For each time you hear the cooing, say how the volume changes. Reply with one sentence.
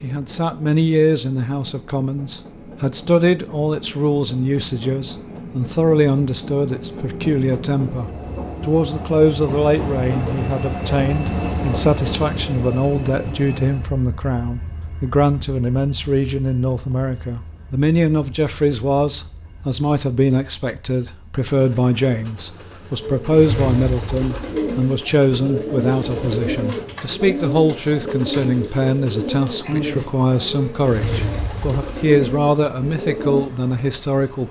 You can hear the cooing from 23.0 to 33.5 s, at a steady volume.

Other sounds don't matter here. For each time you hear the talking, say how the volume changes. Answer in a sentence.
The talking can be heard from 0.0 to 34.4 s, at a steady volume.